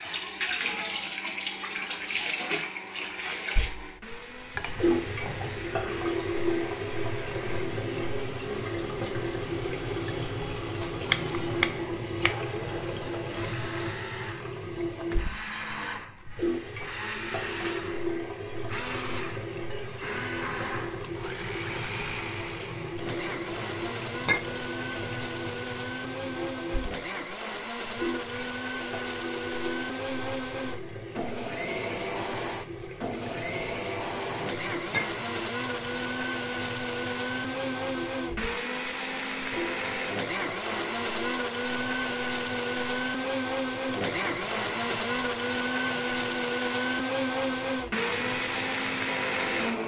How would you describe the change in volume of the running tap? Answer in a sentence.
The loudness of the running tap goes down.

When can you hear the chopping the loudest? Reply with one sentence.
The volume of the chopping peaks at 11 seconds.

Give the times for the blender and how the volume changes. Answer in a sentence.
The blender can be heard from 0.0 to 49.8 s, getting louder.